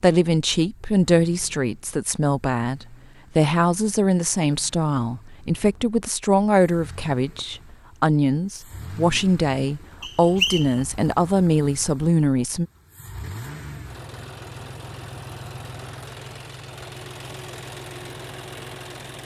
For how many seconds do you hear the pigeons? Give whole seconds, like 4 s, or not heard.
not heard.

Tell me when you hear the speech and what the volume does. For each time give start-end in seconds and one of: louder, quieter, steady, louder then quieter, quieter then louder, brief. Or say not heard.
0.0-12.7 steady.